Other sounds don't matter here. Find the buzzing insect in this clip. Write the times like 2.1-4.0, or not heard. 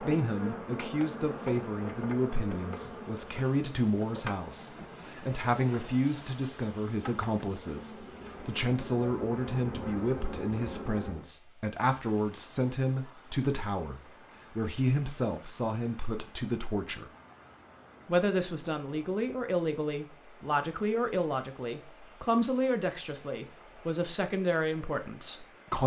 0.0-11.3.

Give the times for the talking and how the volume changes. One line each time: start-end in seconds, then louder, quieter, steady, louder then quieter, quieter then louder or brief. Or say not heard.
0.0-17.1 steady
18.1-25.8 steady.